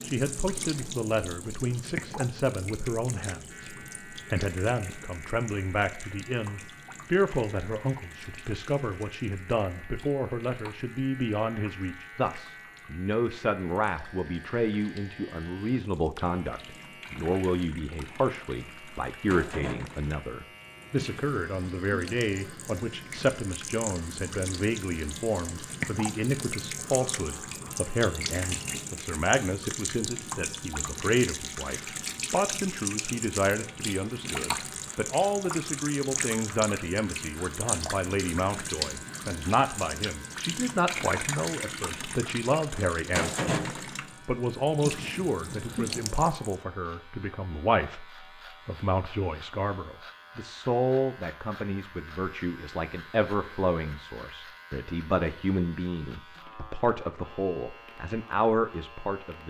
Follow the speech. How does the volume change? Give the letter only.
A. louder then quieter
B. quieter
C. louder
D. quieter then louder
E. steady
E.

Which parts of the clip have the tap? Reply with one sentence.
You can hear the tap from 0.0 to 46.5 s.